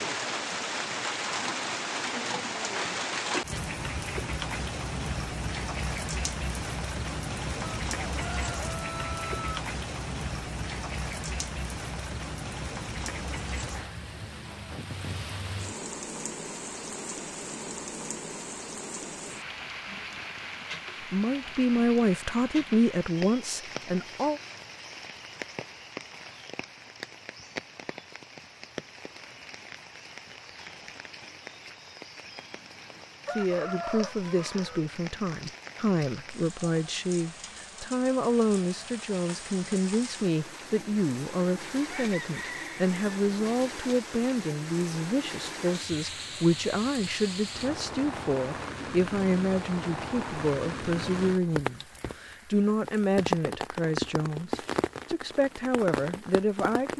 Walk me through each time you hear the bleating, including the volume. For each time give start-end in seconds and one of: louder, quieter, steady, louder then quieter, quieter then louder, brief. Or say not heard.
not heard.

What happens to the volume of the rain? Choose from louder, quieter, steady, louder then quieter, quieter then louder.
quieter then louder.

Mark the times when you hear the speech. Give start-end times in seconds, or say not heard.
21.0-24.4, 33.3-56.9.